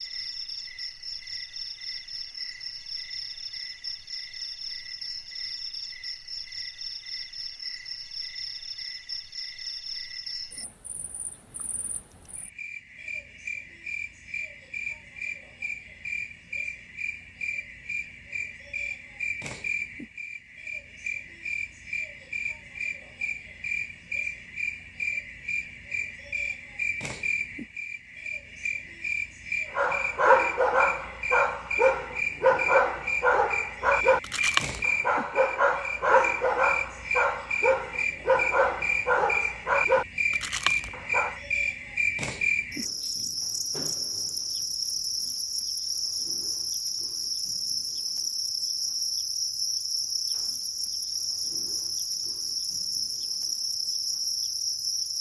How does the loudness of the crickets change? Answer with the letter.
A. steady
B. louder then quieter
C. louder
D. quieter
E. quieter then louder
C.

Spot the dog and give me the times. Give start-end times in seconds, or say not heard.
29.8-41.4.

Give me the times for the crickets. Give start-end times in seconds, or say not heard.
0.0-55.1.